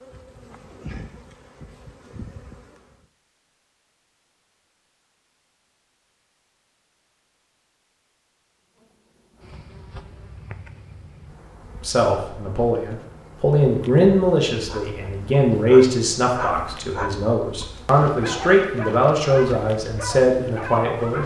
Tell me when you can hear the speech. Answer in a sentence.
The speech can be heard from 11.8 to 21.2 s.